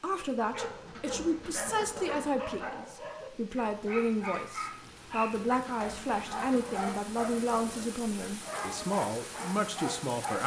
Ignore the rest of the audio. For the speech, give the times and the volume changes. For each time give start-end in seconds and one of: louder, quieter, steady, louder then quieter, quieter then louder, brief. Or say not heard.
0.0-10.4 steady.